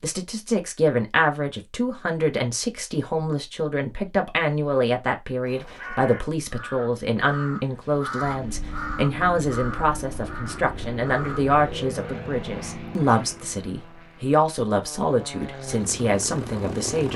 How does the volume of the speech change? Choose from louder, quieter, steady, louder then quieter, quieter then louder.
steady.